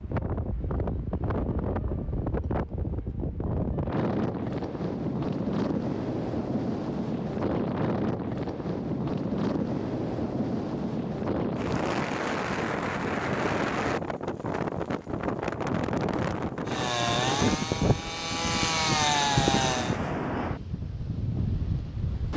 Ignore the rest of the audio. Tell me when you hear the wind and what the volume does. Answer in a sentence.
The wind can be heard from 0.0 to 22.3 s, at a steady volume.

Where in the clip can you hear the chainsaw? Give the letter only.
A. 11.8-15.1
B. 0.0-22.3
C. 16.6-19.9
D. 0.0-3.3
C.